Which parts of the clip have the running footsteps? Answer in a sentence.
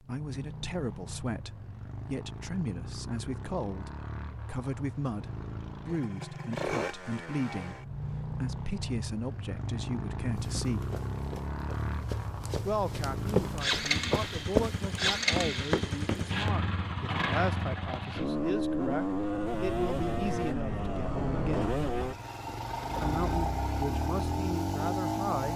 You can hear the running footsteps from 10.4 to 16.6 s.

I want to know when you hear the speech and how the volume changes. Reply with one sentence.
The speech can be heard from 0.0 to 10.9 s, at a steady volume; from 12.7 to 21.8 s, at a steady volume; and briefly from 22.9 to 25.5 s.